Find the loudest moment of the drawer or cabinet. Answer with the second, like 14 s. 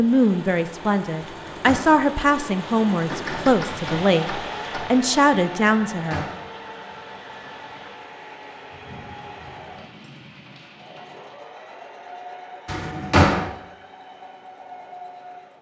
13 s.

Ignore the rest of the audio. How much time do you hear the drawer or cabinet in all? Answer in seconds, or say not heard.
2 s.